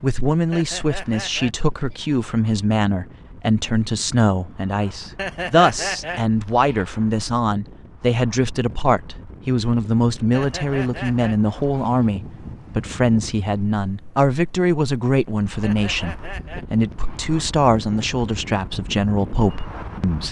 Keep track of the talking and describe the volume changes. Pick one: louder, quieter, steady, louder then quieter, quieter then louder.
steady.